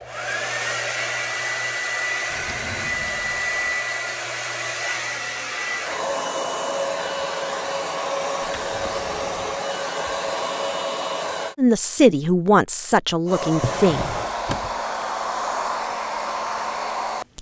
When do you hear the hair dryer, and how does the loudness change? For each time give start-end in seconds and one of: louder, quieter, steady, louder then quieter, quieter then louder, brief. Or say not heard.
0.0-11.6 steady
13.2-17.3 steady.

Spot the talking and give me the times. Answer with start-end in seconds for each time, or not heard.
11.6-14.1.